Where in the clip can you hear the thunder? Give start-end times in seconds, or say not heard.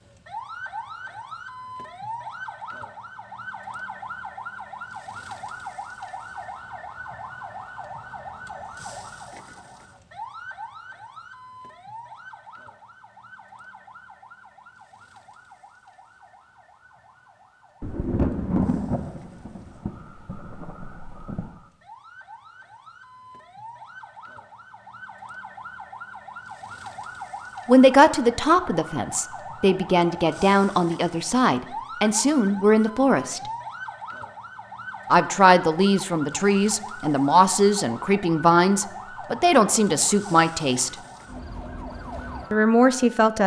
17.8-21.6.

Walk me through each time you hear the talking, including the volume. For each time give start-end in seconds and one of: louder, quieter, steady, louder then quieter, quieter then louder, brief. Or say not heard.
27.6-33.4 steady
35.1-41.0 steady
42.5-43.4 brief.